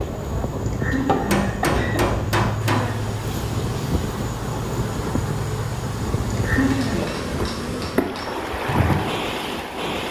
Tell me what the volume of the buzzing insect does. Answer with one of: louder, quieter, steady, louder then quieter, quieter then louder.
steady.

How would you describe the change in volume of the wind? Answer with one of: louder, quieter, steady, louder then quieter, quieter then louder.
steady.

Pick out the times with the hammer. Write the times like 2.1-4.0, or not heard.
1.3-2.9, 6.7-8.3.